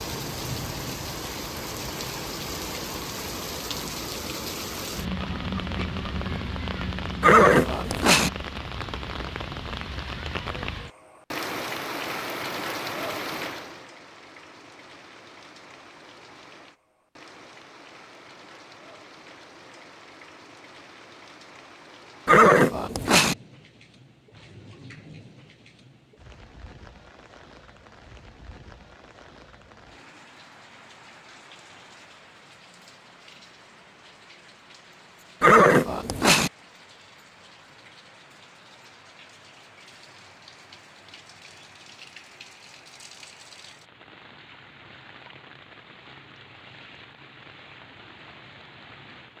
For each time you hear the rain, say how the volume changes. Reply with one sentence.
The rain can be heard from 0.0 to 49.3 s, getting quieter.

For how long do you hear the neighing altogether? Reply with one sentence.
You can hear the neighing for 3 seconds altogether.